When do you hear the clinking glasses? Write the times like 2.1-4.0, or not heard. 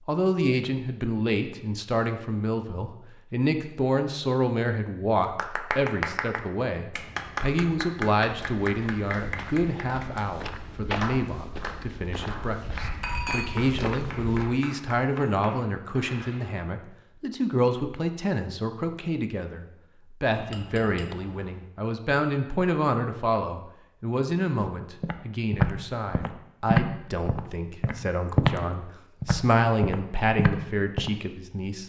13.0-13.7, 20.3-21.6.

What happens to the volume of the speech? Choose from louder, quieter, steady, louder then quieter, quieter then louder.
steady.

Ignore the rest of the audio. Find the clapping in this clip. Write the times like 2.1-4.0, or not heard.
5.3-16.6.